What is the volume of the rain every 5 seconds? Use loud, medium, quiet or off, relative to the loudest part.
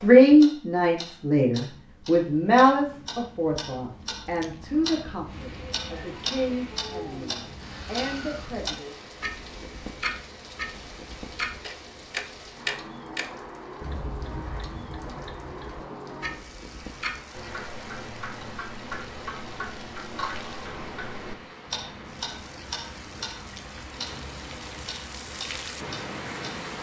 off, medium, medium, medium, medium, loud.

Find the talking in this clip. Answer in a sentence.
The talking can be heard from 0.0 to 8.9 s.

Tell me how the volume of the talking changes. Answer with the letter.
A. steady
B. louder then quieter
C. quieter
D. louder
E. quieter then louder
C.